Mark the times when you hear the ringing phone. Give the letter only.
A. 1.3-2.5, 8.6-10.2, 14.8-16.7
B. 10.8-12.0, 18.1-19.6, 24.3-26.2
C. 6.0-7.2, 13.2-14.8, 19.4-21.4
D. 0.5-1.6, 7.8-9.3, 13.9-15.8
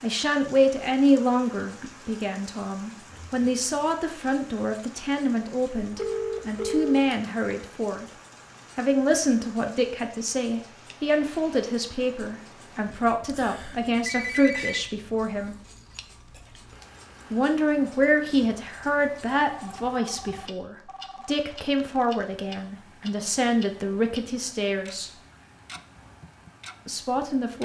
C.